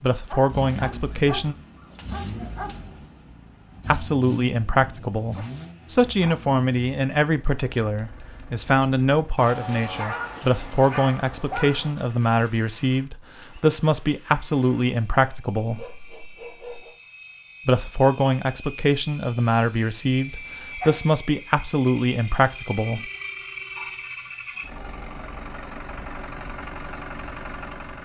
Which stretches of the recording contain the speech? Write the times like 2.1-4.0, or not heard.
0.0-1.6, 3.9-15.8, 17.6-23.1.